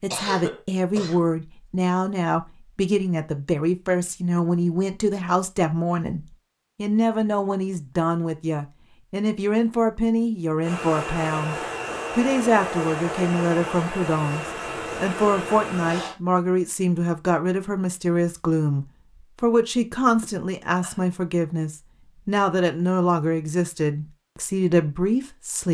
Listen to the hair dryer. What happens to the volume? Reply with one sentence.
The loudness of the hair dryer stays about the same.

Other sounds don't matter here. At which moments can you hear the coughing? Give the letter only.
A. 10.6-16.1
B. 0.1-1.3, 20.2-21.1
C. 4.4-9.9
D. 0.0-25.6
B.